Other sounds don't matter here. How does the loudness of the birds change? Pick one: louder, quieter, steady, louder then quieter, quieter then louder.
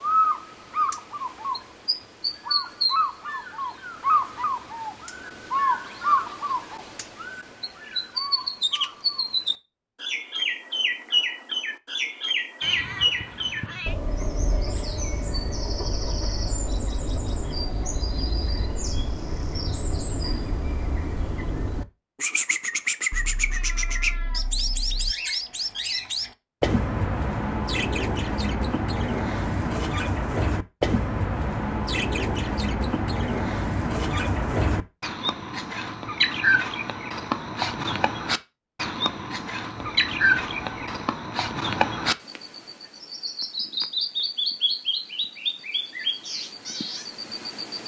steady.